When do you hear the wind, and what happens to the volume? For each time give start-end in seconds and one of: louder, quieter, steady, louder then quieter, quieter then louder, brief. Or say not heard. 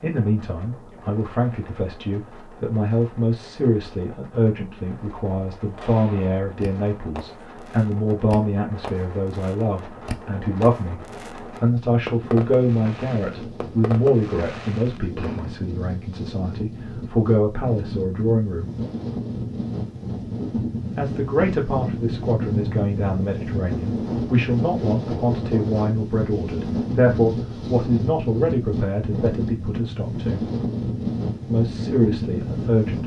0.0-33.0 louder.